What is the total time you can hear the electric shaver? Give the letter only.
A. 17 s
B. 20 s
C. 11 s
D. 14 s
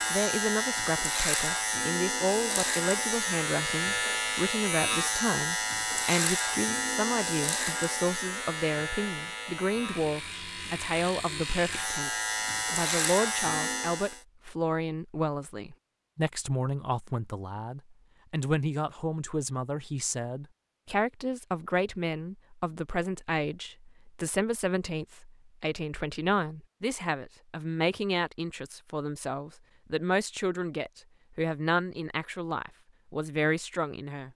D.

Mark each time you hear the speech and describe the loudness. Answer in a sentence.
You can hear the speech from 0.1 to 34.2 s, at a steady volume.